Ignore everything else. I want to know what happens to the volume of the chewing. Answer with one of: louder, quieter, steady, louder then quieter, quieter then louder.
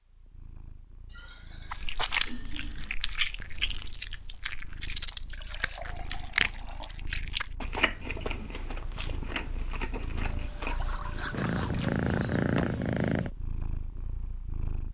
quieter.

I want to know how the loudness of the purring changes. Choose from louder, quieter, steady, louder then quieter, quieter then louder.
louder.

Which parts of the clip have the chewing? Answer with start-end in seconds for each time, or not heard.
1.6-12.1.